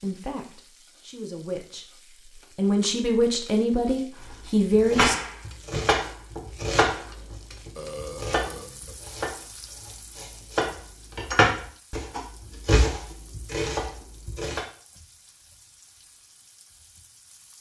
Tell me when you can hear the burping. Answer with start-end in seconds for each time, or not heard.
7.8-8.9.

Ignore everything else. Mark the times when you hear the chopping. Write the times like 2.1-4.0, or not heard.
4.7-14.6.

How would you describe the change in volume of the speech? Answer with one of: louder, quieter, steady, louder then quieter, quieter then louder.
louder.